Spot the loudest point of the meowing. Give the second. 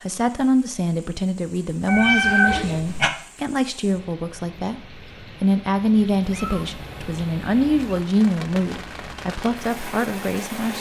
2 s.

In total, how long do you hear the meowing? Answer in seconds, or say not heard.
3 s.